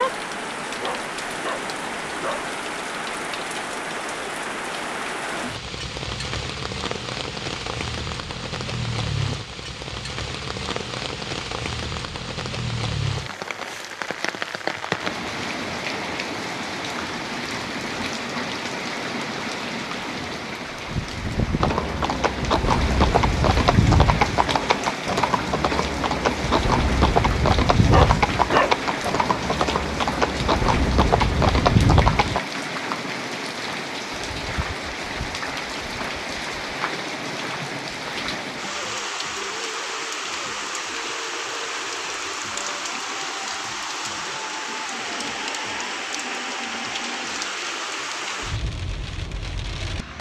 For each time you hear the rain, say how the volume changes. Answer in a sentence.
You can hear the rain from 0.0 to 50.1 s, at a steady volume.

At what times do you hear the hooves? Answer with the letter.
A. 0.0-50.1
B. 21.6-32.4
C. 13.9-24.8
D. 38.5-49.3
B.